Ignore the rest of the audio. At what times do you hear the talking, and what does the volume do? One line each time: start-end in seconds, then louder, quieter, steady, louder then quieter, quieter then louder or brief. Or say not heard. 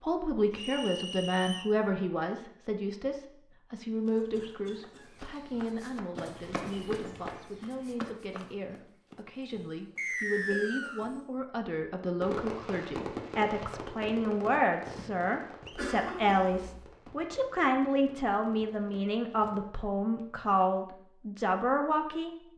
0.0-22.3 quieter then louder.